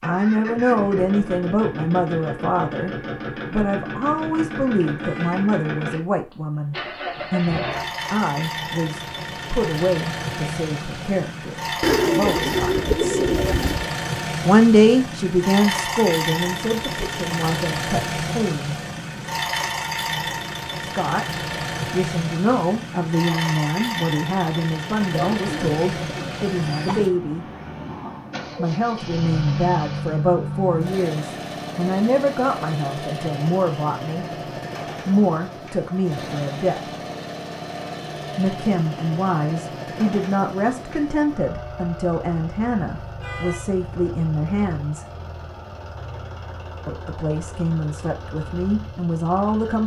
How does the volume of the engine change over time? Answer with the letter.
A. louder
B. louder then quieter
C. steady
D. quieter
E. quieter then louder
D.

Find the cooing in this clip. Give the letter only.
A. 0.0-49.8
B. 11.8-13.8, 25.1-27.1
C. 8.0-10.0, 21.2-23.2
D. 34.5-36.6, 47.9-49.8
B.